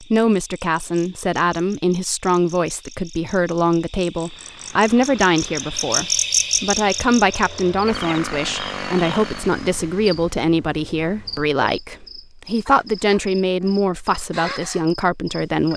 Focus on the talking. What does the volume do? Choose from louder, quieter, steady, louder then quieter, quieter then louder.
steady.